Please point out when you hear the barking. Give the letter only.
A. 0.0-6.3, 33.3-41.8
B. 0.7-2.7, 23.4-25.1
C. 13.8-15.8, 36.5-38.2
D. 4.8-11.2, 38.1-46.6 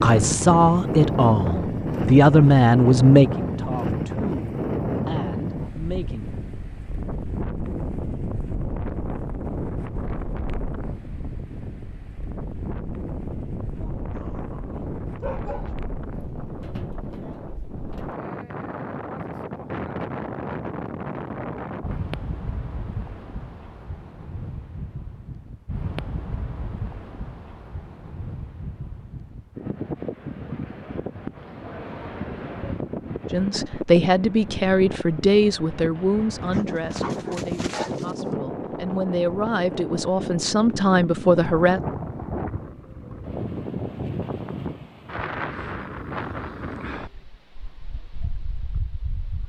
C.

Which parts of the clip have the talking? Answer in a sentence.
You can hear the talking from 0.0 to 6.3 s and from 33.3 to 41.8 s.